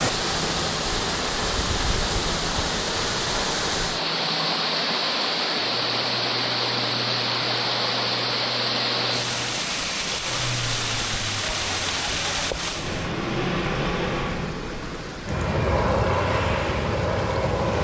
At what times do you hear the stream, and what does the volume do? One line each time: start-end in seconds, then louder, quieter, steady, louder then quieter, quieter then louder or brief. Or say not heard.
0.0-17.7 quieter.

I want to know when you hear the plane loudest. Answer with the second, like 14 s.
16 s.